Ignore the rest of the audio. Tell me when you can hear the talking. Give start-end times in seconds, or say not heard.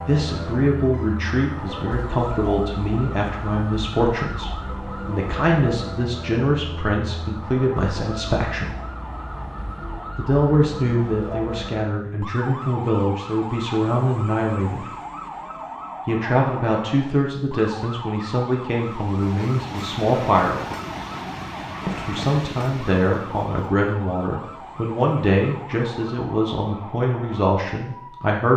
0.1-8.7, 10.2-14.8, 16.1-20.6, 21.9-28.5.